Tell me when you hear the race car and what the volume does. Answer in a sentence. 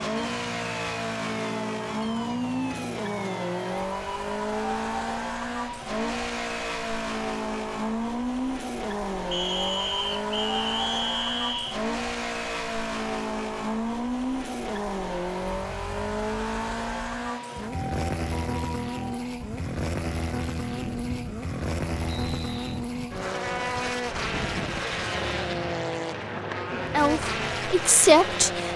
The race car can be heard from 0.0 to 28.7 s, at a steady volume.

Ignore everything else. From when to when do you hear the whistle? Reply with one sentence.
You can hear the whistle from 9.3 to 11.8 s and from 22.1 to 22.9 s.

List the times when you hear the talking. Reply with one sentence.
You can hear the talking from 26.8 to 28.7 s.